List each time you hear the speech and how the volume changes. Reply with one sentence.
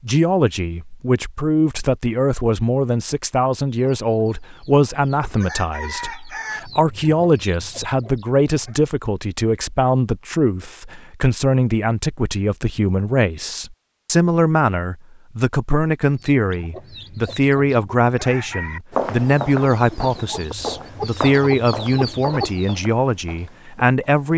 You can hear the speech from 0.0 to 24.3 s, at a steady volume.